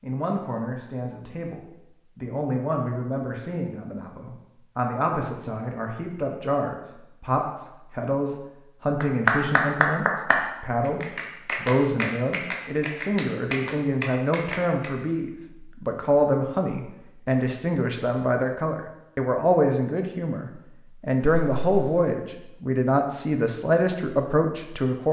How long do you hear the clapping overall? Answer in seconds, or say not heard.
6 s.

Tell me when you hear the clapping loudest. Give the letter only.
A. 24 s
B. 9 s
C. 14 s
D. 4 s
B.